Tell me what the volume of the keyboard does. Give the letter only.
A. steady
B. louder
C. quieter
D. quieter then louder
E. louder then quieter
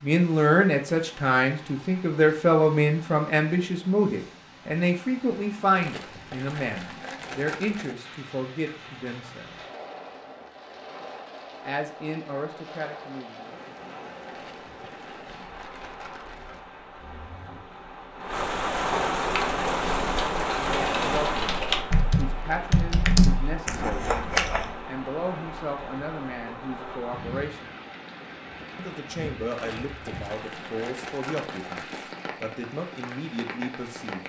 E.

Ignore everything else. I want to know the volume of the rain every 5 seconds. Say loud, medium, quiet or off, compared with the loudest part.
quiet, quiet, medium, loud, loud, medium, medium.